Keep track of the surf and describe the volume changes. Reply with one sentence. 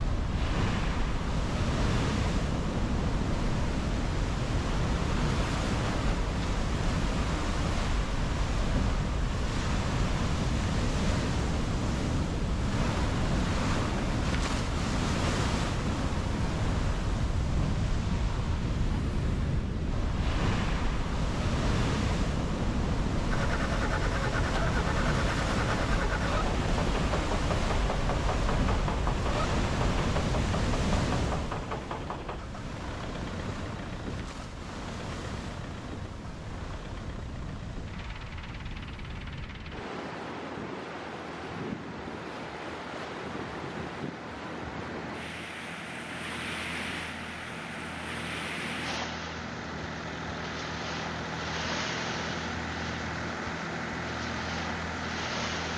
The loudness of the surf goes down.